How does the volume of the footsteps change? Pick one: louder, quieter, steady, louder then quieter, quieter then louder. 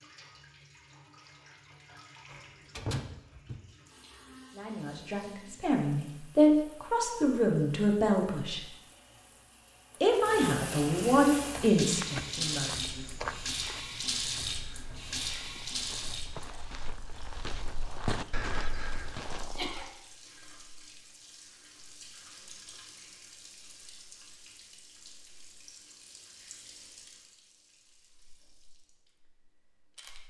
quieter then louder.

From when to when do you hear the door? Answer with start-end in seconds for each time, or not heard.
2.3-3.7.